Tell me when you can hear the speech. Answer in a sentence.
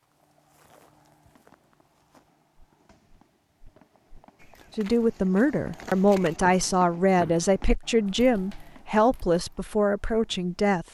You can hear the speech from 4.8 to 10.9 s.